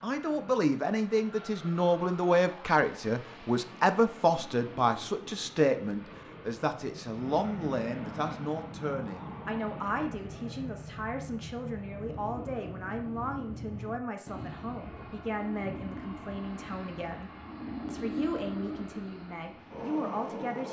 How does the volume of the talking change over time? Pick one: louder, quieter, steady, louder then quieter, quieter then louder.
quieter.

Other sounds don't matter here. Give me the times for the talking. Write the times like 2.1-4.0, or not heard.
0.0-20.6.